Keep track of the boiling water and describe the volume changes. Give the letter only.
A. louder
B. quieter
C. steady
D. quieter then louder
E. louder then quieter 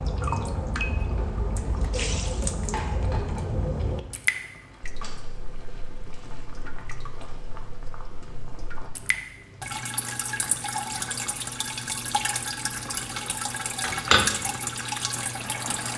D.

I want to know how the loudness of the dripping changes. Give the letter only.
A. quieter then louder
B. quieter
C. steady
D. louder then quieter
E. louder
A.